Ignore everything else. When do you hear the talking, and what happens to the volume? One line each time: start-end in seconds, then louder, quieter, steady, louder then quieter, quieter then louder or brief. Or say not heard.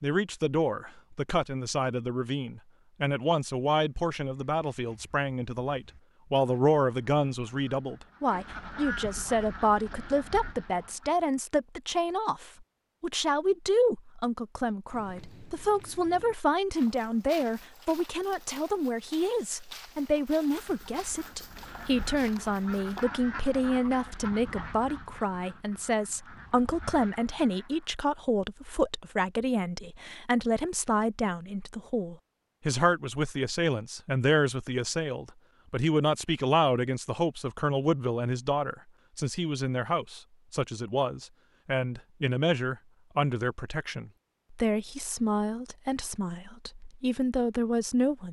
0.0-48.2 steady.